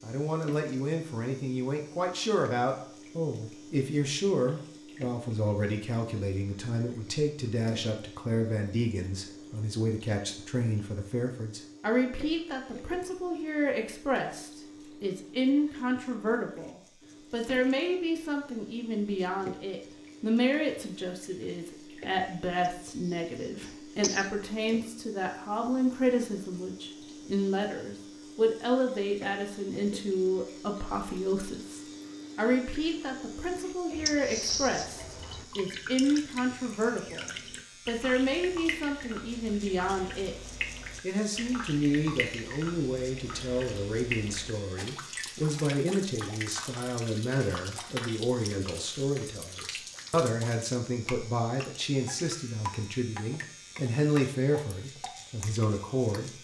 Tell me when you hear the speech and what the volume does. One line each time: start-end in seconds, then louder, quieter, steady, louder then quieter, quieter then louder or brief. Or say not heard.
0.0-56.3 steady.